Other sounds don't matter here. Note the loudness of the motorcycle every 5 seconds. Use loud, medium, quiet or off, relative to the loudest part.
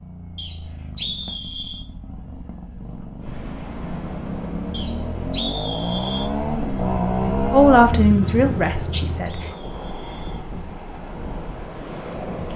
medium, loud, off.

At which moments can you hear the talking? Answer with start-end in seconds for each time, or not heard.
7.5-9.4.